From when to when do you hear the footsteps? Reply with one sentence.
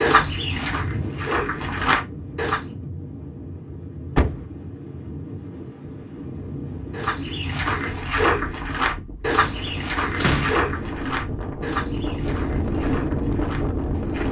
You can hear the footsteps from 0.0 to 2.6 s and from 6.9 to 14.2 s.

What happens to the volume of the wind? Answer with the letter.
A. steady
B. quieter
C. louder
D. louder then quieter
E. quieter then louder
C.